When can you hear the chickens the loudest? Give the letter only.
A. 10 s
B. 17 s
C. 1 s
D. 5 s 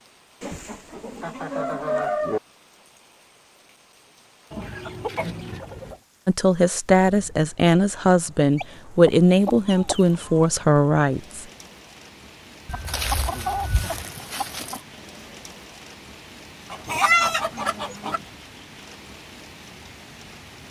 B.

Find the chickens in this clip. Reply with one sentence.
The chickens can be heard from 0.4 to 2.4 s, from 4.5 to 6.0 s, from 8.6 to 10.2 s, from 12.7 to 14.8 s and from 16.7 to 18.2 s.